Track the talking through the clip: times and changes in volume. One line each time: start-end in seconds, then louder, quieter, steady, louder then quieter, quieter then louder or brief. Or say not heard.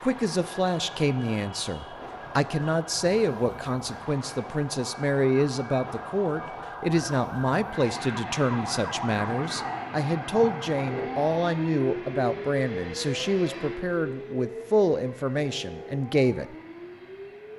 0.0-16.6 steady.